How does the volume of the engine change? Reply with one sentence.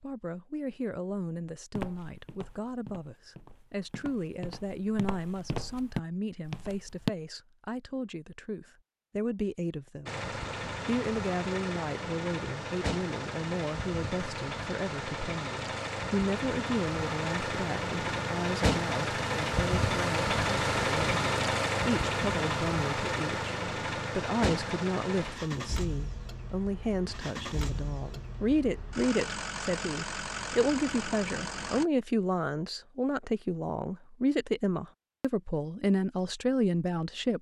The volume of the engine goes up, then down.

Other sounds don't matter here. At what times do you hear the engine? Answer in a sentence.
The engine can be heard from 10.1 to 31.9 s.